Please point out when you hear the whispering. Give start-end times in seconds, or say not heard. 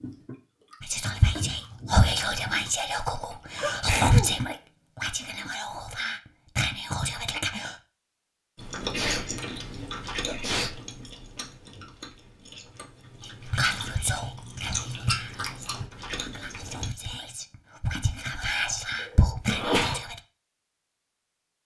0.8-7.8, 13.2-20.2.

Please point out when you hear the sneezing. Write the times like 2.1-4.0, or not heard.
3.6-4.3, 8.9-10.8, 19.0-20.0.